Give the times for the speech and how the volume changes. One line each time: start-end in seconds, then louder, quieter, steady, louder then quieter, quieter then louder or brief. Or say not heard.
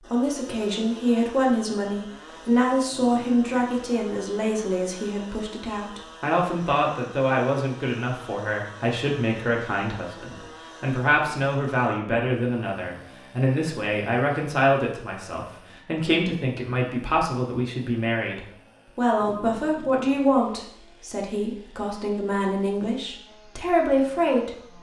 0.0-24.7 steady.